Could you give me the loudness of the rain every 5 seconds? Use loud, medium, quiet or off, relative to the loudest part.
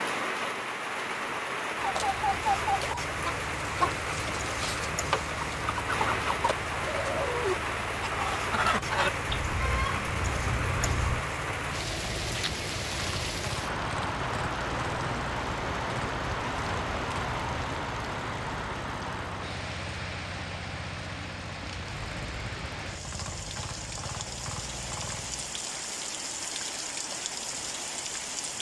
loud, loud, loud, loud, medium, loud.